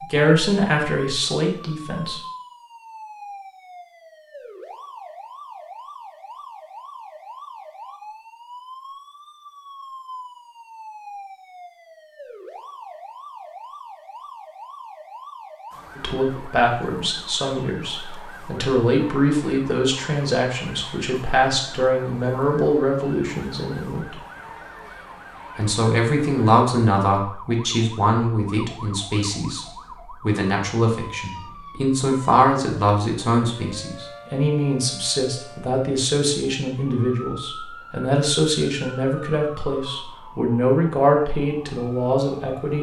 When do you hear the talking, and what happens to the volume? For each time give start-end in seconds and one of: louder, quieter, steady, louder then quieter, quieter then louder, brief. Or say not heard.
0.0-2.2 brief
15.9-24.1 steady
25.6-42.7 steady.